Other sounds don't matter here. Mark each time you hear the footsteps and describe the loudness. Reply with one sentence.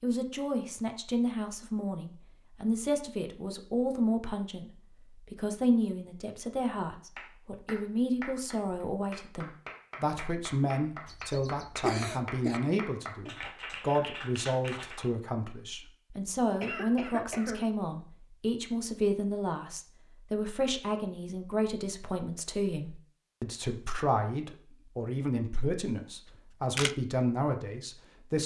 You can't hear the footsteps here.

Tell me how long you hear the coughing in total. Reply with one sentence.
You can hear the coughing for 3 seconds altogether.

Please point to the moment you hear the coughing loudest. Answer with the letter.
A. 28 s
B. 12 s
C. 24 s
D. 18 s
B.